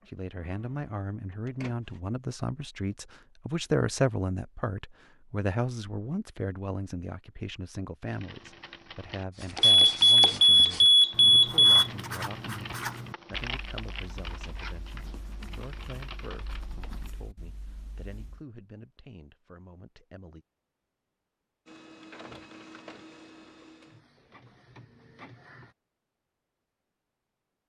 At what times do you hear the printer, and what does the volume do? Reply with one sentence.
You can hear the printer briefly from 0.0 to 2.0 s; and from 21.6 to 25.8 s, getting quieter then louder.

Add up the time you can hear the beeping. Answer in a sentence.
You can hear the beeping for 2 seconds altogether.